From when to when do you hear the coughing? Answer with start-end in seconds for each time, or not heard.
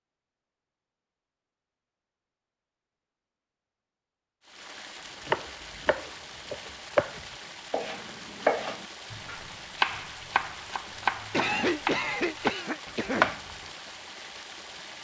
11.3-13.3.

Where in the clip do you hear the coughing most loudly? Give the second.
12 s.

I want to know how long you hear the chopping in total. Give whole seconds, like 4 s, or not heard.
8 s.